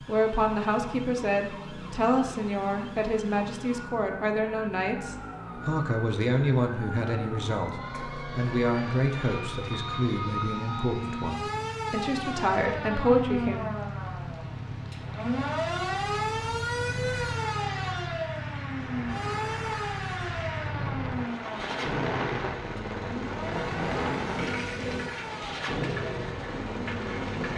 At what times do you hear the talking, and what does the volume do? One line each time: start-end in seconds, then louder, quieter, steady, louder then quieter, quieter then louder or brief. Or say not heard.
0.0-13.7 steady.